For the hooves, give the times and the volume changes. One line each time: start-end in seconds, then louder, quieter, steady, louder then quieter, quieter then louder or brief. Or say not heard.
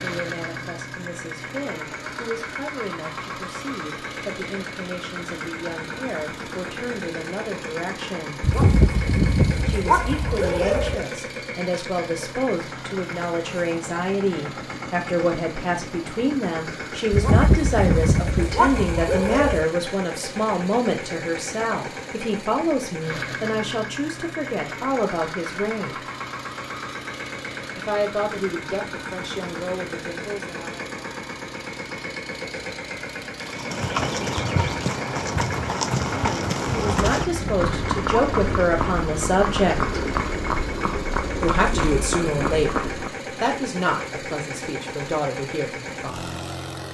33.4-43.1 steady.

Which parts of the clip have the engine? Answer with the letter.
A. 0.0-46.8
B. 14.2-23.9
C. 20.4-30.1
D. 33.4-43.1
A.